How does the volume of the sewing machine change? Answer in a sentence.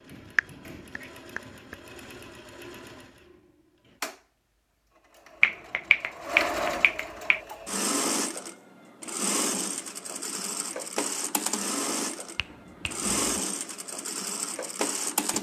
The volume of the sewing machine goes up.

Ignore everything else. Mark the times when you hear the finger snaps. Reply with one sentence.
You can hear the finger snaps from 0.3 to 1.8 s, from 5.4 to 7.4 s and from 12.3 to 13.2 s.